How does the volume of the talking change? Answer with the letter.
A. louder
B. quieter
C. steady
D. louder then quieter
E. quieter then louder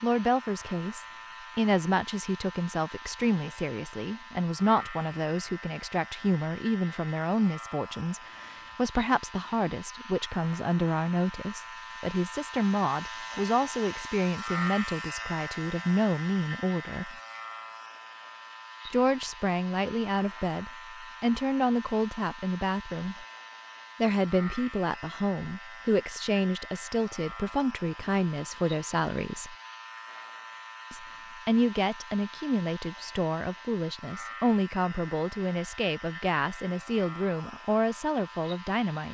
C.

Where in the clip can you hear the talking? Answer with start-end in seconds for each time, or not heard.
0.0-17.1, 18.9-23.2, 24.0-29.6, 30.9-39.0.